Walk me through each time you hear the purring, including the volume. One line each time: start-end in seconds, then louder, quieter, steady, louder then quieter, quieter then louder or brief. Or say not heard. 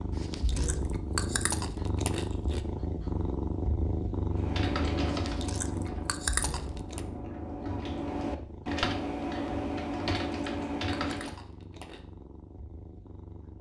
0.0-13.5 quieter.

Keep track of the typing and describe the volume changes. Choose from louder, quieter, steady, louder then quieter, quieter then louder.
quieter then louder.